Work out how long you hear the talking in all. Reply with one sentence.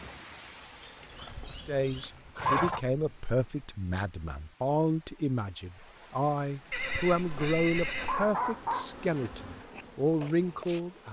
You can hear the talking for 9 seconds altogether.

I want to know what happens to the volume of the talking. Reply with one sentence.
The loudness of the talking stays about the same.